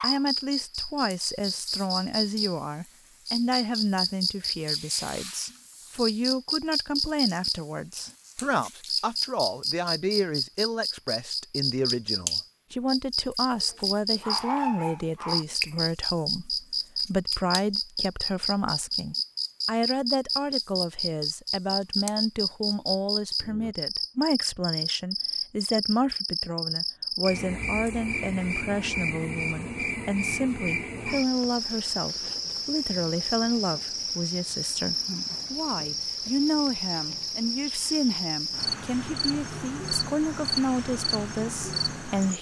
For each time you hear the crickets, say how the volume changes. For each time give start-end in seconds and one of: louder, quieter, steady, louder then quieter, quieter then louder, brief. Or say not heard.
0.0-42.3 steady.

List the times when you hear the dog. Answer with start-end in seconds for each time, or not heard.
13.6-15.4.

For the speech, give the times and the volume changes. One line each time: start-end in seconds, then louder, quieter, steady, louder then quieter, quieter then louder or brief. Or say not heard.
0.0-42.3 steady.